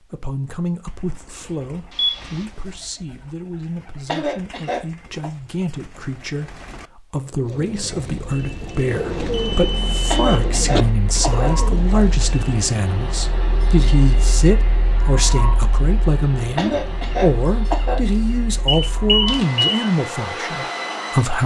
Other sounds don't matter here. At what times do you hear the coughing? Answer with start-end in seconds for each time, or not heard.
4.0-5.3, 10.1-12.1, 16.6-18.0.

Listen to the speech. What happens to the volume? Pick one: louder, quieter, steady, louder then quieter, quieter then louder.
louder.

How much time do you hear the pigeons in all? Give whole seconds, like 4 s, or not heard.
12 s.